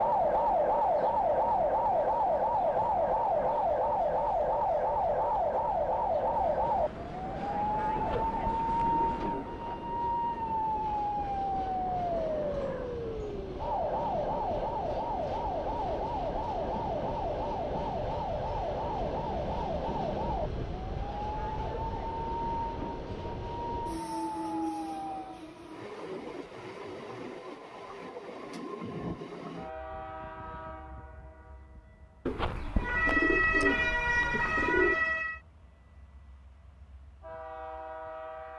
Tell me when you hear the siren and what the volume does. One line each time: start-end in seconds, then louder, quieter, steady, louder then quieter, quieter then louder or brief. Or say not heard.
0.0-25.4 quieter
32.8-35.4 brief.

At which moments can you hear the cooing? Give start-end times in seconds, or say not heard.
8.0-9.6, 32.2-35.0.